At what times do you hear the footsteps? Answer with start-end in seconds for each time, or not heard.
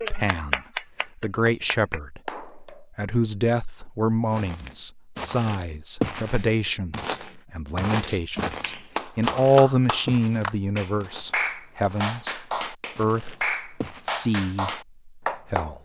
4.3-12.2, 12.9-14.2.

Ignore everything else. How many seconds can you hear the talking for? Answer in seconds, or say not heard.
16 s.